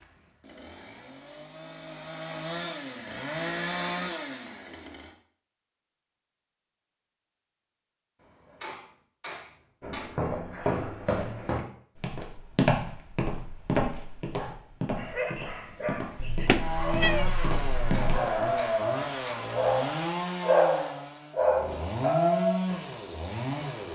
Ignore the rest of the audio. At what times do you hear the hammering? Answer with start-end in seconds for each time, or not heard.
8.2-10.1, 17.8-19.4.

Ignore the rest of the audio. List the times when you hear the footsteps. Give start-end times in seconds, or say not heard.
9.8-18.4.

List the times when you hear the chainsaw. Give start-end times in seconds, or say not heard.
0.0-5.2, 16.4-23.9.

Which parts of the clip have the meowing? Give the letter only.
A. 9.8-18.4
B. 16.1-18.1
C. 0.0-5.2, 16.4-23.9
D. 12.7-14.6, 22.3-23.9
B.